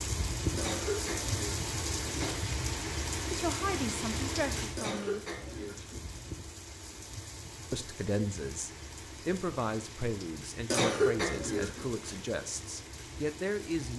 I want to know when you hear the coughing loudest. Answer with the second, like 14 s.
11 s.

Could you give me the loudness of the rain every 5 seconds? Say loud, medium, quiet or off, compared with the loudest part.
loud, medium, medium.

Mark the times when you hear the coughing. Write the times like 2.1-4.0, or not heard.
0.6-2.4, 4.8-6.3, 10.7-12.2.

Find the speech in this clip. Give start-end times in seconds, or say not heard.
3.3-5.2, 7.7-13.9.